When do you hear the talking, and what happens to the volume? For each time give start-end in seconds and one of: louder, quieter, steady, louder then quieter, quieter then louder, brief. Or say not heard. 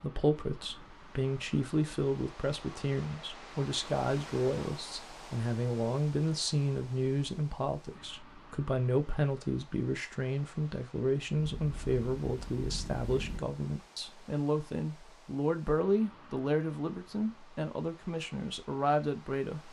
0.0-19.6 steady.